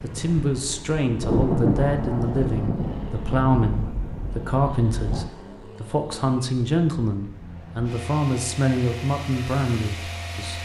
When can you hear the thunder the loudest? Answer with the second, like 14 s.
2 s.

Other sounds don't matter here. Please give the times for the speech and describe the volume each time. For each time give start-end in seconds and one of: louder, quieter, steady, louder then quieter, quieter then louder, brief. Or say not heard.
0.0-10.6 steady.